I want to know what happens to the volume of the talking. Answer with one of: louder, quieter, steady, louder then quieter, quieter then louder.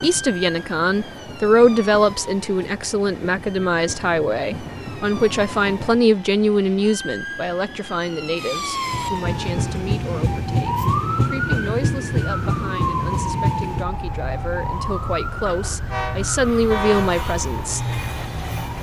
quieter then louder.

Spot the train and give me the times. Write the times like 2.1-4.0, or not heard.
0.0-18.7.